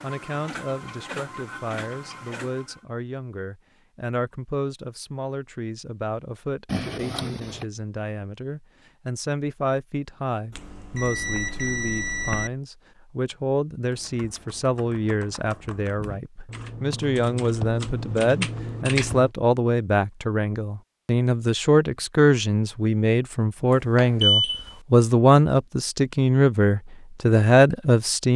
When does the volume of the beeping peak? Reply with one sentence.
The loudest moment of the beeping is at 24 seconds.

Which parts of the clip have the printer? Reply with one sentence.
The printer can be heard from 0.0 to 2.8 s.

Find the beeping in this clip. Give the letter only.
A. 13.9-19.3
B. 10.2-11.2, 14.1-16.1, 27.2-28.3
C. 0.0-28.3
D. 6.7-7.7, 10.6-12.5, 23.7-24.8
D.